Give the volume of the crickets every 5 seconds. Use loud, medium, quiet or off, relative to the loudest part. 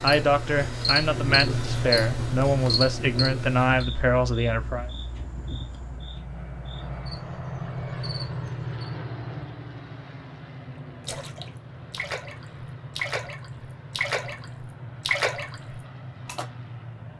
loud, quiet, off, off.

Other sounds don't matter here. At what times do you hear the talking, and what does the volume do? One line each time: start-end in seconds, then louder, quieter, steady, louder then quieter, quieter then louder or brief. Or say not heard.
0.0-4.9 steady.